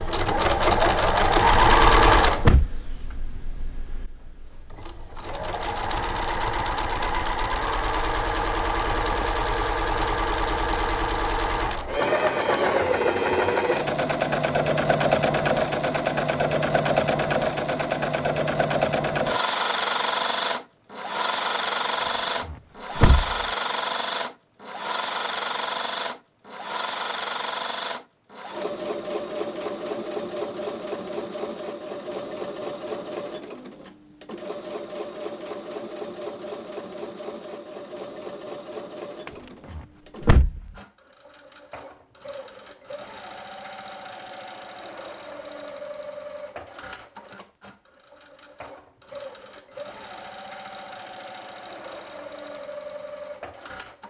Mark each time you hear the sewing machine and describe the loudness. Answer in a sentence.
You can hear the sewing machine from 0.0 to 54.0 s, getting quieter.